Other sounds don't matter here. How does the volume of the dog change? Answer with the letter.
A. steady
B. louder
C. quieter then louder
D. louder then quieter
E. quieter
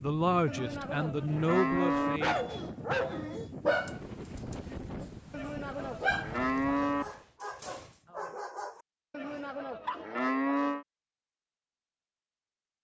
E.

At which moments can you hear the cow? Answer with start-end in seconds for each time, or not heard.
0.5-2.2, 5.3-7.0, 9.1-10.8.